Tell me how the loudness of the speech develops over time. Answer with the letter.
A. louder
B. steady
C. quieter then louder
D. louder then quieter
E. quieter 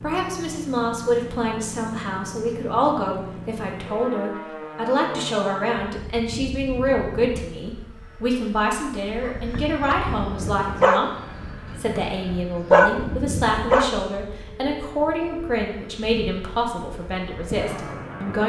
B.